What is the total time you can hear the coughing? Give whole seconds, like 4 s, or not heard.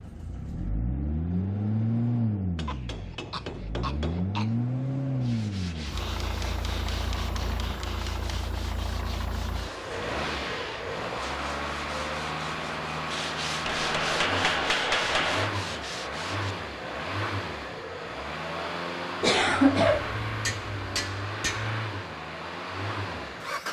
3 s.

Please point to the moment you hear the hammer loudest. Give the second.
15 s.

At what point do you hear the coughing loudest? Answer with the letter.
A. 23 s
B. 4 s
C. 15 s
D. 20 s
D.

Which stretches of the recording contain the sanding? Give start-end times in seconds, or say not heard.
5.2-16.6.